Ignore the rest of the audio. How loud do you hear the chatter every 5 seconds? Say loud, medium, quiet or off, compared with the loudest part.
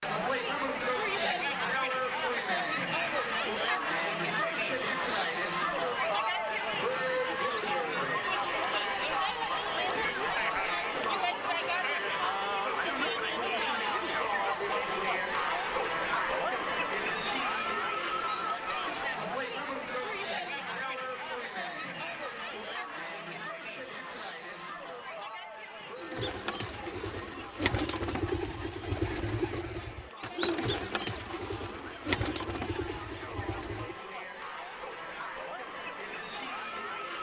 loud, loud, loud, loud, medium, quiet, quiet, medium.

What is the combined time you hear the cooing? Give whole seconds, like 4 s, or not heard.
8 s.